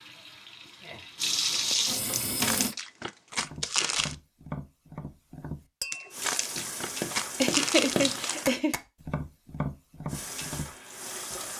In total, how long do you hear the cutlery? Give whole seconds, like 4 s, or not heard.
not heard.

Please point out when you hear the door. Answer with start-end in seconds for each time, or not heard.
not heard.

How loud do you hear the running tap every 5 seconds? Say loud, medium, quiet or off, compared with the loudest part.
loud, medium, medium.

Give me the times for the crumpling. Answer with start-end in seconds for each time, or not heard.
2.2-4.2, 5.9-8.4.